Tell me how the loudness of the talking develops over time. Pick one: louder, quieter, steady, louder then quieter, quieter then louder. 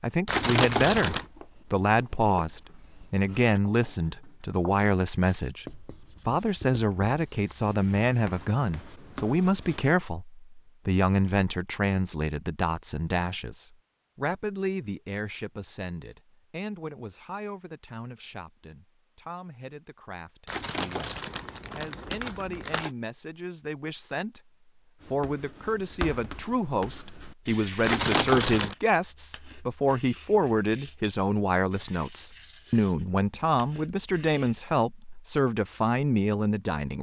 quieter then louder.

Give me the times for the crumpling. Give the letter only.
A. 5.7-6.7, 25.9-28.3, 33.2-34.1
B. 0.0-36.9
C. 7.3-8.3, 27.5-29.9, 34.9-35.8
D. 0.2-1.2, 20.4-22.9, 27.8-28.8
D.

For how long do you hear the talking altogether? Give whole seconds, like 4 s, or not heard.
37 s.